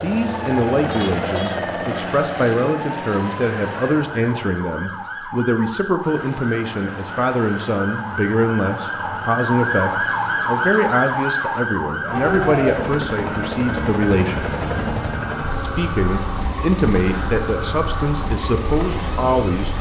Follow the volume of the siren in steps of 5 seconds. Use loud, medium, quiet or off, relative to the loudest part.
medium, loud, loud, medium.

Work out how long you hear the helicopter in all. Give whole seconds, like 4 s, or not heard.
18 s.